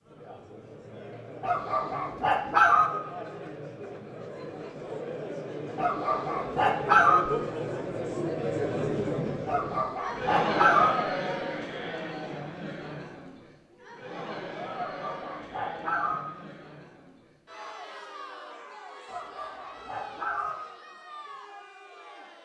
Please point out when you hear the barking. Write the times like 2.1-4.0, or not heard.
1.4-2.9, 5.8-7.2, 9.4-10.9, 14.7-16.2, 19.1-20.6.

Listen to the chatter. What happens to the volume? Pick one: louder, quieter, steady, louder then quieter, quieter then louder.
louder then quieter.